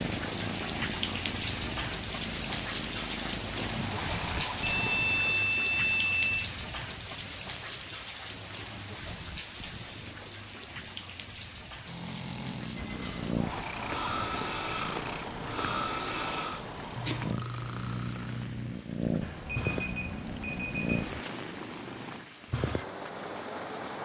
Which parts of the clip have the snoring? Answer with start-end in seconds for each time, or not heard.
11.8-18.8.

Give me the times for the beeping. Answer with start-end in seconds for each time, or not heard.
4.6-6.5, 12.8-13.6, 19.2-21.2.